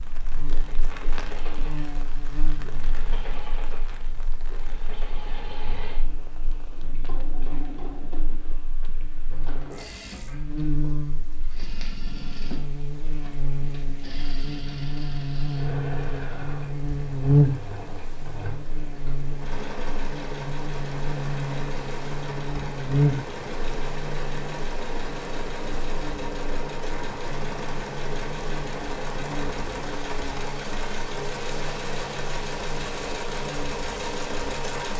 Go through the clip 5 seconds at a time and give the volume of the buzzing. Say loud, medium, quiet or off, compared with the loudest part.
quiet, quiet, medium, loud, loud, quiet, quiet.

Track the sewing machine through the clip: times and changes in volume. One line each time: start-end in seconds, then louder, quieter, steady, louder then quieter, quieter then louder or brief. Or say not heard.
0.0-34.9 louder.